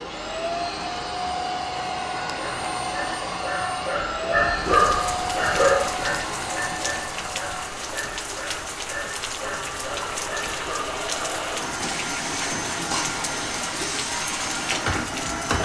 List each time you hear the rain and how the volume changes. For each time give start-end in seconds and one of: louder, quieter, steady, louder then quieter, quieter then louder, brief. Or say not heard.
4.7-15.5 steady.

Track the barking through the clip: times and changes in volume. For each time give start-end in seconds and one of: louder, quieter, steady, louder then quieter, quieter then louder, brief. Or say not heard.
2.4-10.9 louder then quieter.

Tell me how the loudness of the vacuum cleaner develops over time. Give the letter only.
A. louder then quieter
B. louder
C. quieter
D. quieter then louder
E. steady
D.